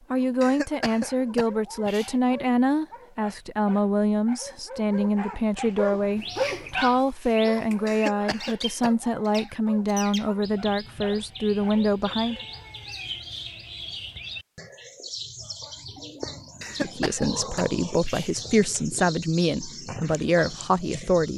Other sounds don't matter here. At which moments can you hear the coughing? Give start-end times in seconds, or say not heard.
0.4-2.1, 7.8-8.9, 16.6-18.4.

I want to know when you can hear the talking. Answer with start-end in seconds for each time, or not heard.
0.1-12.3, 16.8-21.3.